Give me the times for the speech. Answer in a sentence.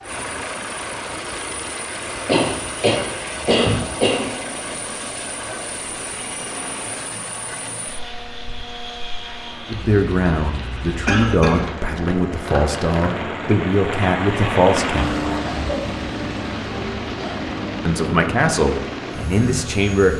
You can hear the speech from 9.7 to 15.2 s and from 17.9 to 20.1 s.